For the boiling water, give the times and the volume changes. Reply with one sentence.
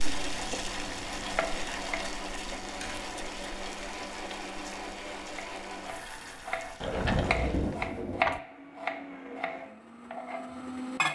The boiling water can be heard from 0.0 to 7.8 s, getting quieter.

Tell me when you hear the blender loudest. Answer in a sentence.
The volume of the blender peaks at 11 seconds.